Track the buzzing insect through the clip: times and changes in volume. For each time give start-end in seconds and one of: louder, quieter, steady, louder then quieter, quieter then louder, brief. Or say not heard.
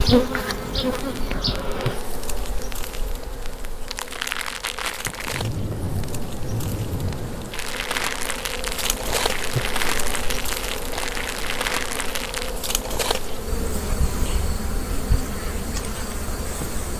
0.0-16.9 quieter then louder.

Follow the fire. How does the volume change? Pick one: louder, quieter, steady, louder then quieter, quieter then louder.
louder.